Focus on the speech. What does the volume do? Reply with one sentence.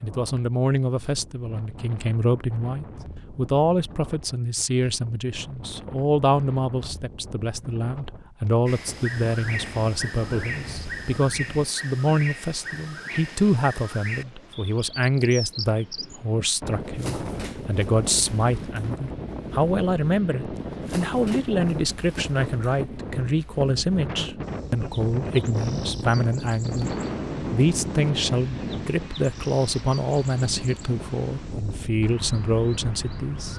The volume of the speech stays about the same.